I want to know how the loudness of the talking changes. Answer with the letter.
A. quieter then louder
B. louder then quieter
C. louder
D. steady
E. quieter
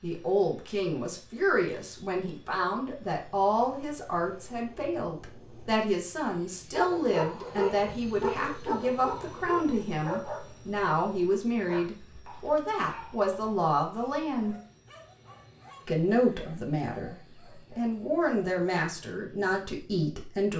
D.